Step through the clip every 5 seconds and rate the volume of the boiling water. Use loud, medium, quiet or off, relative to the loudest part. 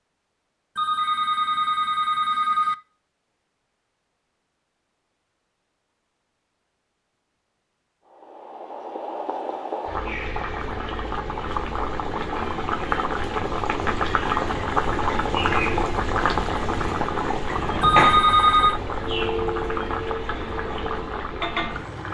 off, medium, loud, loud, medium.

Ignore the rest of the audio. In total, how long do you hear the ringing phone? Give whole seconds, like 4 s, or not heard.
3 s.